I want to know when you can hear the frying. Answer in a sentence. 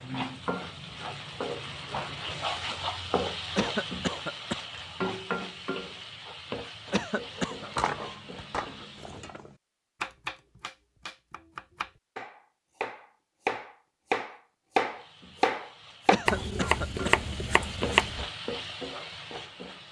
You can hear the frying from 0.0 to 9.4 s and from 14.8 to 19.8 s.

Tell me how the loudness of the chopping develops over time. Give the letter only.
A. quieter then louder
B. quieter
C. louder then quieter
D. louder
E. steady
D.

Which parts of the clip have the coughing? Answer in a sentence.
The coughing can be heard from 3.5 to 4.6 s, from 6.9 to 7.7 s and from 16.1 to 17.1 s.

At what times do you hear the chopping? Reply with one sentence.
You can hear the chopping from 7.3 to 18.2 s.